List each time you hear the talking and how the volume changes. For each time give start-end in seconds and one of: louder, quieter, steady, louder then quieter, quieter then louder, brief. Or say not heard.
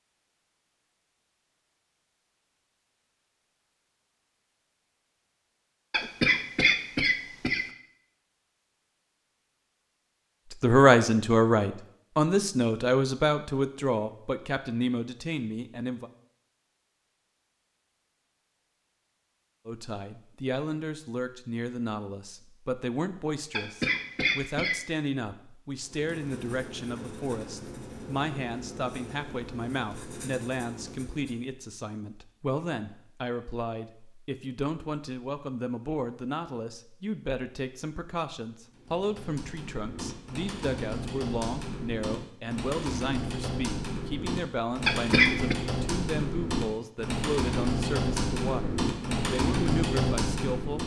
10.5-16.1 quieter
19.6-50.8 steady.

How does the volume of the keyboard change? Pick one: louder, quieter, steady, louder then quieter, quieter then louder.
louder.